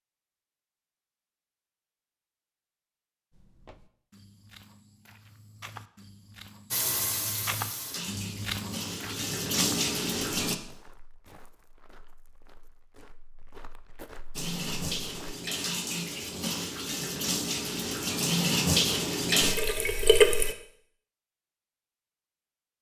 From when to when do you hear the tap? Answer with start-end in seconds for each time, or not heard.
6.7-10.6, 14.3-20.6.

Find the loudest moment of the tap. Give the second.
20 s.